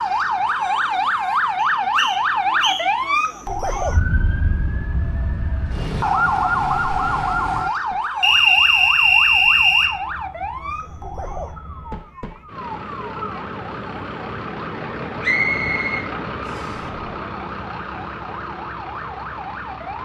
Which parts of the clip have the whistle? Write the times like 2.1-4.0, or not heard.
1.6-2.9, 8.2-9.9, 15.2-16.8.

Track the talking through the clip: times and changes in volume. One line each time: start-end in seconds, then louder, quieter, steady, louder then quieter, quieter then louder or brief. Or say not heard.
not heard.